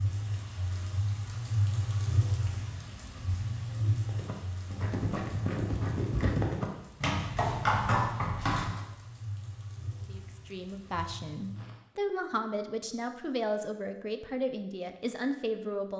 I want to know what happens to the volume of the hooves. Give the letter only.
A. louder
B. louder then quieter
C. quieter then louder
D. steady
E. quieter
A.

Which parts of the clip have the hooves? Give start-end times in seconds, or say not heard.
4.0-8.8.